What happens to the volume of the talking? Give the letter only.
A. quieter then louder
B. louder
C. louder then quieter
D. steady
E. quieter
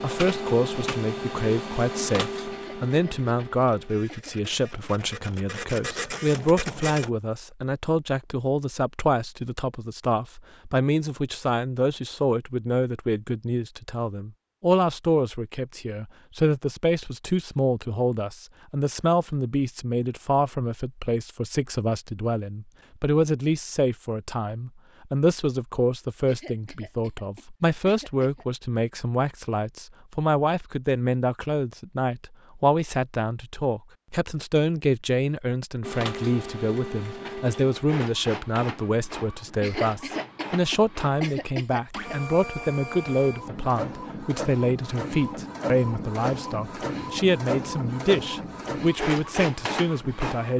D.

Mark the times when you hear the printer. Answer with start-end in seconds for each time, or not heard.
0.0-7.1, 35.8-50.5.